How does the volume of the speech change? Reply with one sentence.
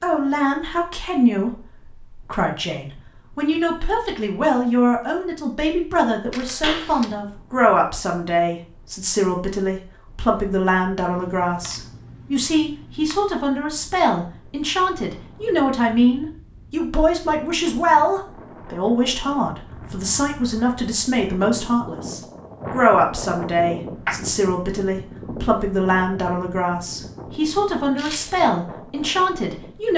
The loudness of the speech stays about the same.